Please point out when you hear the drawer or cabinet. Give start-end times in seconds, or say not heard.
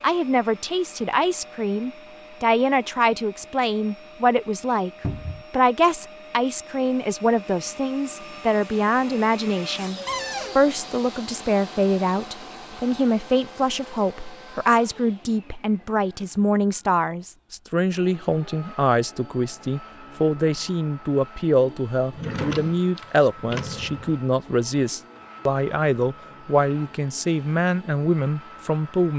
5.0-5.5, 10.1-10.6, 22.1-24.1.